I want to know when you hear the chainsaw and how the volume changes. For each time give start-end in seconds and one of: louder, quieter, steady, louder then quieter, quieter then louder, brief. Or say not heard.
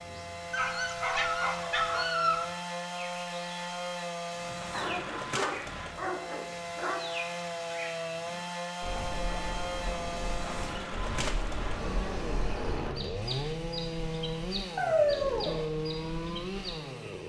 0.0-17.2 steady.